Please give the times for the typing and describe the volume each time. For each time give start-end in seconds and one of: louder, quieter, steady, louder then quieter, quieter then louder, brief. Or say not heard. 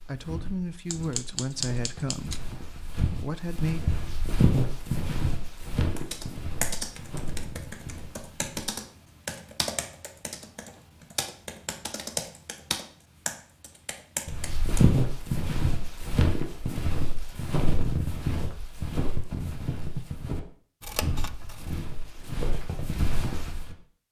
6.0-14.8 steady.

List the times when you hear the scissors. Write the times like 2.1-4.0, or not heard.
0.9-2.4, 20.8-21.8.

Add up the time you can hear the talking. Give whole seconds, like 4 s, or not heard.
4 s.